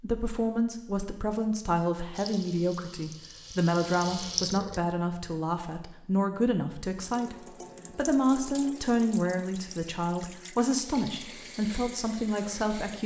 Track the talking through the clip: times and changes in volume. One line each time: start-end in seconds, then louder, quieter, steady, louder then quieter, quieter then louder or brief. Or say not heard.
0.0-13.0 steady.